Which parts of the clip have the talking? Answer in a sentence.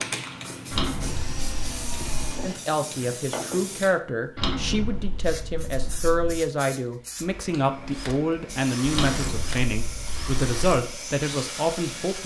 You can hear the talking from 2.4 to 12.2 s.